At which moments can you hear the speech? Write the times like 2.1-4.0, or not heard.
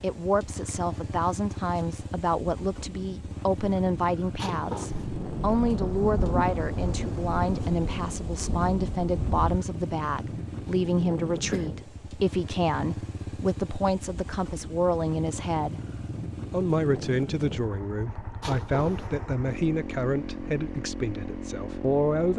0.0-15.8, 16.5-22.3.